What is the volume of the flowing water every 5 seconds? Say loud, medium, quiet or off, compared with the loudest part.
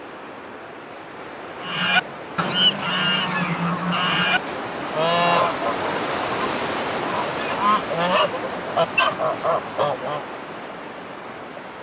medium, loud, medium.